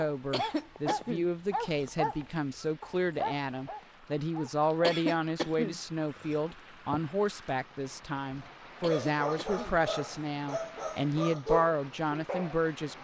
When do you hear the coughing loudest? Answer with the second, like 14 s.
5 s.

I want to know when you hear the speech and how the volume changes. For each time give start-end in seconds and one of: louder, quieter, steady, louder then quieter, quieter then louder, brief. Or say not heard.
0.0-12.9 steady.